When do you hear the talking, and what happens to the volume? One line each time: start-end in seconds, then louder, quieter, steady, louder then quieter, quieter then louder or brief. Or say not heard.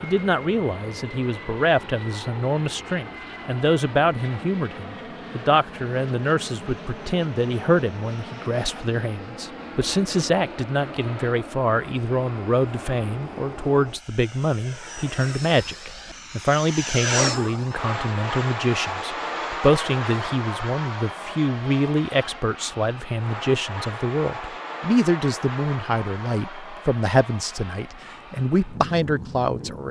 0.0-29.8 steady.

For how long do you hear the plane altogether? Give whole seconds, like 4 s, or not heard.
30 s.